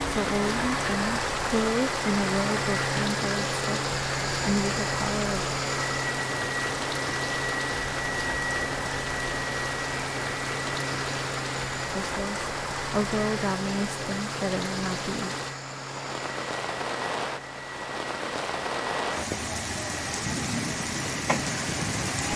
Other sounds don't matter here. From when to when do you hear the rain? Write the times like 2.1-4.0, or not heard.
0.0-22.3.